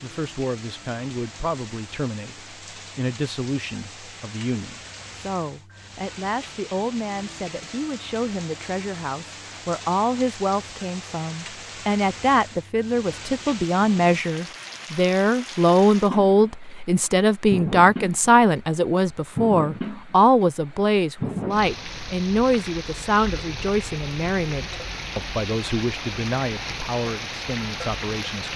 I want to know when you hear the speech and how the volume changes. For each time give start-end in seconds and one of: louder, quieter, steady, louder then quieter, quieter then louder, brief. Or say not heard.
0.0-28.5 louder then quieter.